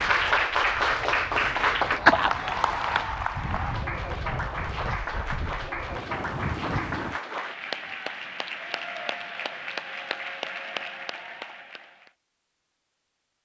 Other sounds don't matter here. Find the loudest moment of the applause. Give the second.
2 s.